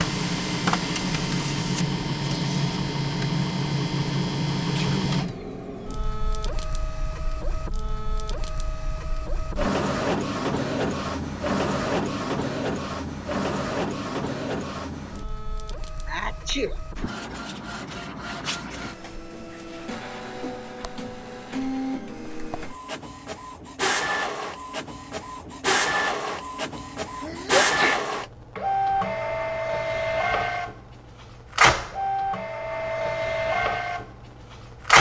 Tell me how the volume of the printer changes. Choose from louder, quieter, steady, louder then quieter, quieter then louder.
quieter then louder.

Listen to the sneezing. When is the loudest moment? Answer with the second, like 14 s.
28 s.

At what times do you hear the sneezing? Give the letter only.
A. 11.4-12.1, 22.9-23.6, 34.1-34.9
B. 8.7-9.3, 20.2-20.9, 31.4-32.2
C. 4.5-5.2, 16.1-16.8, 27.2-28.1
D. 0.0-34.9
C.